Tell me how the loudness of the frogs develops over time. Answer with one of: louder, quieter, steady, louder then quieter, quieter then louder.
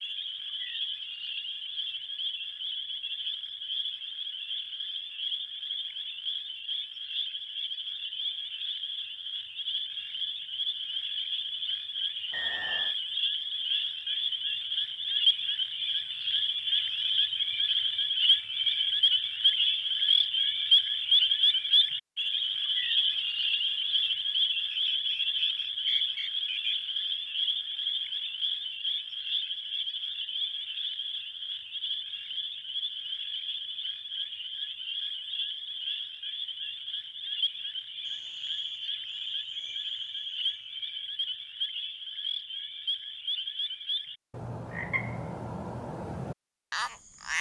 louder then quieter.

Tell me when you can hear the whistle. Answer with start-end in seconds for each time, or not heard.
12.3-12.9, 24.7-26.8, 38.0-40.8.